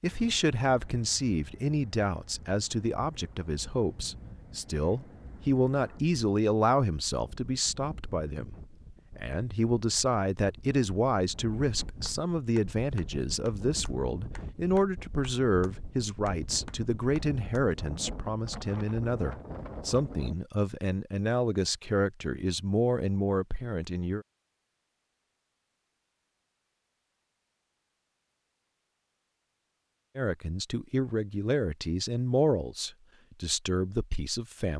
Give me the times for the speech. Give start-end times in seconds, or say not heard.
0.0-8.5, 9.2-24.2, 30.1-34.7.